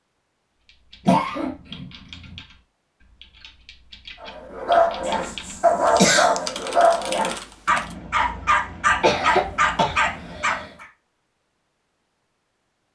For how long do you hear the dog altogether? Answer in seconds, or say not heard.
7 s.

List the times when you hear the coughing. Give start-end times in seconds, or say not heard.
1.1-2.4, 5.0-6.5, 9.0-10.7.